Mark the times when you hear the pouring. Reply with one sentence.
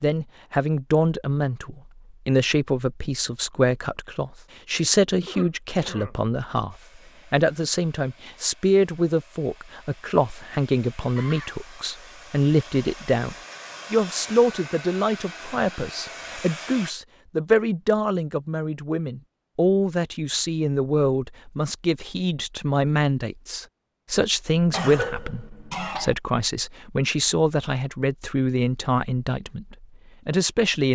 The pouring can't be heard in this clip.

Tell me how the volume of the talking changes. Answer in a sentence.
The volume of the talking stays about the same.